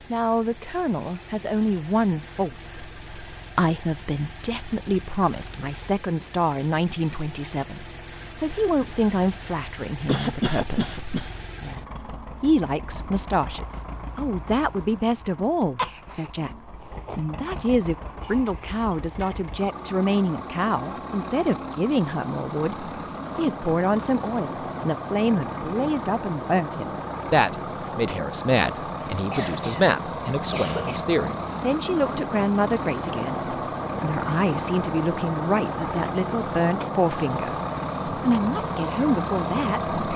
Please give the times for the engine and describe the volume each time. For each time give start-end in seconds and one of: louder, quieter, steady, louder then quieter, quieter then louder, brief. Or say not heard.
0.0-40.1 louder.